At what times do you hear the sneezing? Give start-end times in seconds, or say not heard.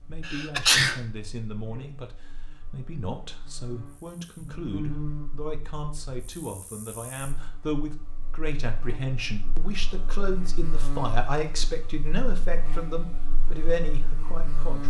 0.2-1.0.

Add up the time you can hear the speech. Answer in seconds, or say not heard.
15 s.